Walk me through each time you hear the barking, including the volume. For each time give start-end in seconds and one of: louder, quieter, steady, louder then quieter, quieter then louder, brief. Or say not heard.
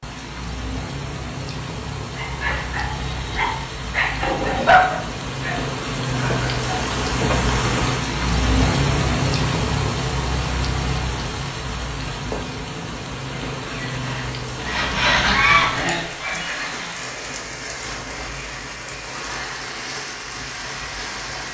2.1-7.5 louder then quieter.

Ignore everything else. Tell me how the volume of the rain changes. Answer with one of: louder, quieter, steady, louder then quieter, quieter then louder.
louder then quieter.